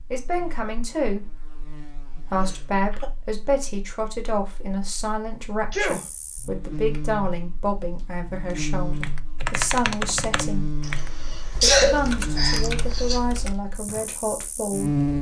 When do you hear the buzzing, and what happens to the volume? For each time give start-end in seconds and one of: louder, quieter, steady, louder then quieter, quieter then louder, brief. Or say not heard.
0.0-15.1 quieter then louder.